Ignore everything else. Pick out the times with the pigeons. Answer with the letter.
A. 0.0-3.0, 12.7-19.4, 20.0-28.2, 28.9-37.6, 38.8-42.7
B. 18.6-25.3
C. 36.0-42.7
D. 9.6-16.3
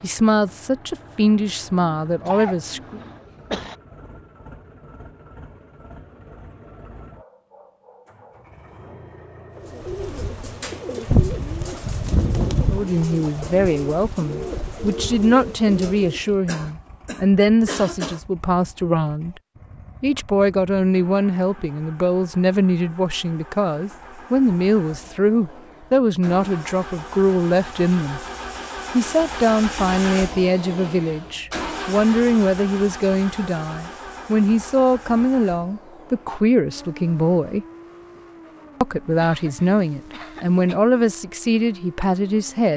D.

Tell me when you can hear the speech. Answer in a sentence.
You can hear the speech from 0.0 to 3.0 s, from 12.7 to 19.4 s, from 20.0 to 28.2 s, from 28.9 to 37.6 s and from 38.8 to 42.7 s.